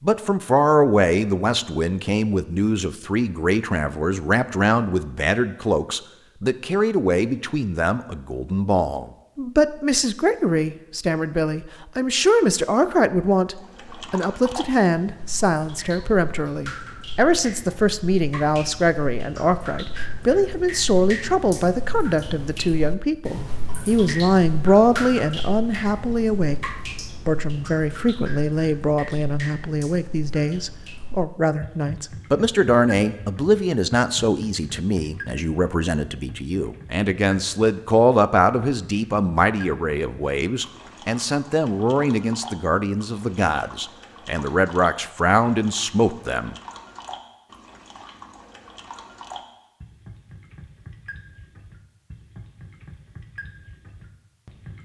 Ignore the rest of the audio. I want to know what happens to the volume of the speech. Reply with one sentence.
The volume of the speech stays about the same.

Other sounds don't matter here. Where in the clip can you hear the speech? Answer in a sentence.
The speech can be heard from 0.0 to 46.5 s.